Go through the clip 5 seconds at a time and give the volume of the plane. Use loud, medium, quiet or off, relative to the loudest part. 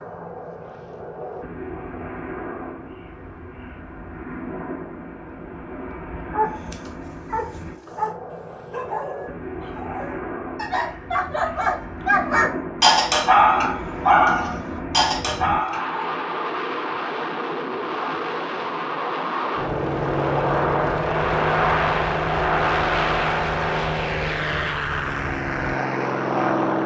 quiet, quiet, medium, medium, loud, loud.